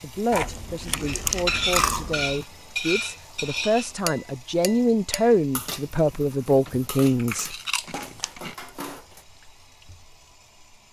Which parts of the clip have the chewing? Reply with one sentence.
You can hear the chewing from 0.3 to 2.5 s and from 6.7 to 8.7 s.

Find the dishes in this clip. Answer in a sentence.
The dishes can be heard from 1.1 to 9.2 s.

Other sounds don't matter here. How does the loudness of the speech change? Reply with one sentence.
The volume of the speech goes up.